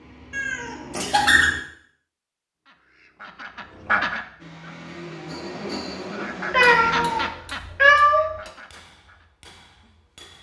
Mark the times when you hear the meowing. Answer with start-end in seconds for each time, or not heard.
0.3-1.5, 6.5-8.3.